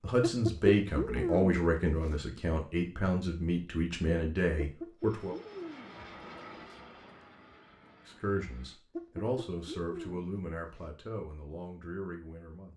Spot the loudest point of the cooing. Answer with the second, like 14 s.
1 s.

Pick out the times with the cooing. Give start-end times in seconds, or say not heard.
0.2-2.2, 4.5-6.0, 8.9-10.9.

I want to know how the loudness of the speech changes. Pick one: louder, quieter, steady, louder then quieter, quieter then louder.
quieter.